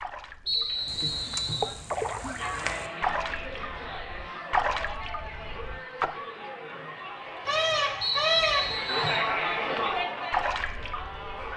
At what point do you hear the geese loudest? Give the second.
8 s.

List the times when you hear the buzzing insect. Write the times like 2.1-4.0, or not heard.
not heard.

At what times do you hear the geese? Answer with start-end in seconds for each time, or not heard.
0.9-2.9, 7.5-8.8.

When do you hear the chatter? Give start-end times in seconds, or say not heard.
2.4-11.5.